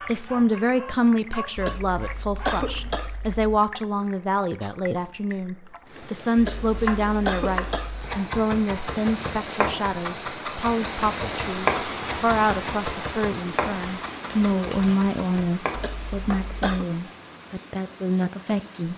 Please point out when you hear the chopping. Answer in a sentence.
The chopping can be heard from 6.7 to 16.4 s.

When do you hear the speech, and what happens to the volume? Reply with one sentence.
The speech can be heard from 0.1 to 18.9 s, at a steady volume.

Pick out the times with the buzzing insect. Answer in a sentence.
You can't hear the buzzing insect here.